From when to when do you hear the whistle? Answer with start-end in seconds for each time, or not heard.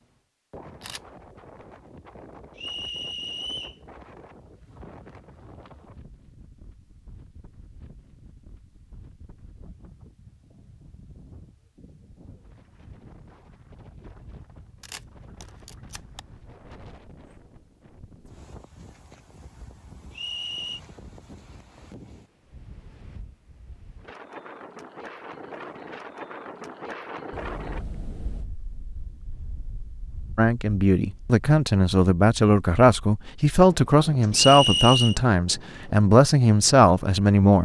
2.5-3.8, 20.1-20.8, 34.3-35.1.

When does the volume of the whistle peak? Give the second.
35 s.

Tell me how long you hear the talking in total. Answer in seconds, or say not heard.
7 s.